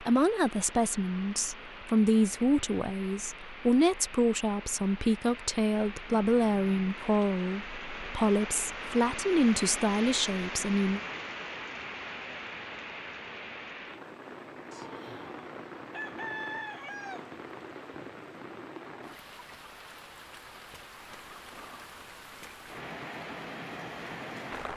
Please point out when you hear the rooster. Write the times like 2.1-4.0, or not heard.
14.7-17.4.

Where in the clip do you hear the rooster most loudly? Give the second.
16 s.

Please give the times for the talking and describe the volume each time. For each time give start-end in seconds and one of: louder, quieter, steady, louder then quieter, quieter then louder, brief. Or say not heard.
0.0-11.0 steady.